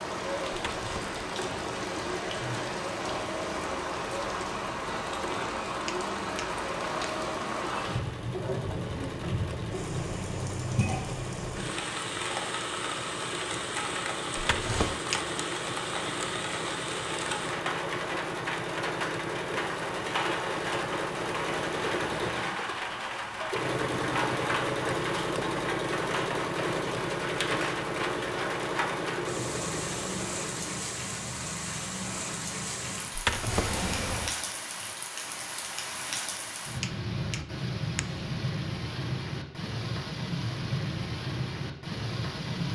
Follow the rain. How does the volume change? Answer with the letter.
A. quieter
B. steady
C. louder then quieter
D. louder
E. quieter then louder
B.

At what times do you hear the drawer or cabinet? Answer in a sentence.
The drawer or cabinet can be heard from 0.7 to 1.1 s, from 14.3 to 15.0 s and from 33.1 to 34.4 s.